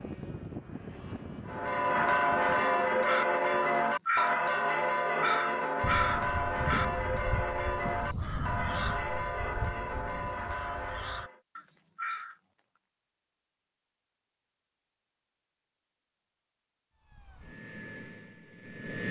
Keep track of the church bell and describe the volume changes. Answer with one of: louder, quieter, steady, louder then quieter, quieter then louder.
quieter.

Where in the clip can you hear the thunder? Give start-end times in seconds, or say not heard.
5.8-10.3.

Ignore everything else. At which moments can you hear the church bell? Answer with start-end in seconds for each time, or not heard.
1.4-11.4.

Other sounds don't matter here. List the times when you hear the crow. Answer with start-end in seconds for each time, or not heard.
3.0-4.5, 5.2-12.3.